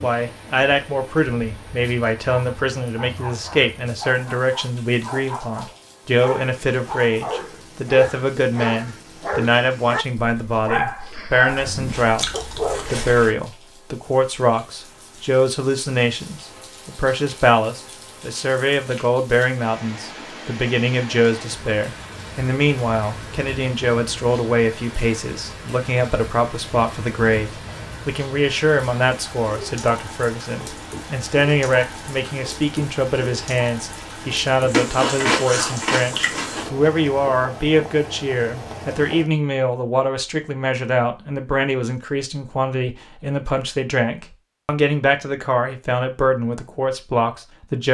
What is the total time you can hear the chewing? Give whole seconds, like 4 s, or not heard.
4 s.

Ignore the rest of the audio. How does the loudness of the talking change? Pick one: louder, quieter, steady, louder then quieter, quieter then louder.
steady.